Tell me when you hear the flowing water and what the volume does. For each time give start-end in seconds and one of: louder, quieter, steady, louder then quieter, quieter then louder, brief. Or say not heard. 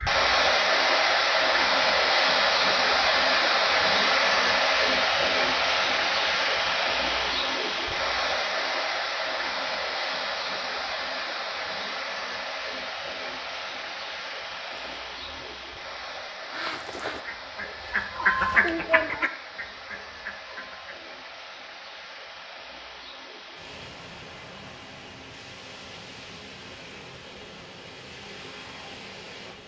0.0-29.6 quieter.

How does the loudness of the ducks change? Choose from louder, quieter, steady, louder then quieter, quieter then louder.
louder then quieter.